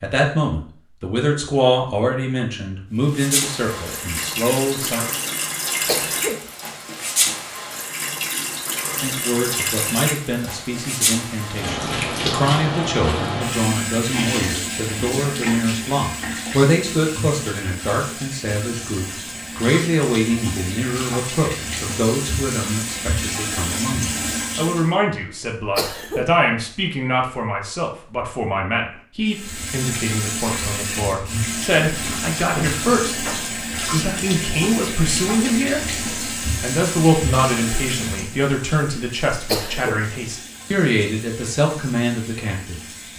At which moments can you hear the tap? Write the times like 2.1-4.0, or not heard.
3.0-24.9, 29.2-43.1.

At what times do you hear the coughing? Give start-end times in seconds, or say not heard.
5.8-6.5, 25.8-26.4, 39.5-40.1.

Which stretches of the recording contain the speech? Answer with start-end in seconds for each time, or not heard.
0.0-5.0, 9.0-42.8.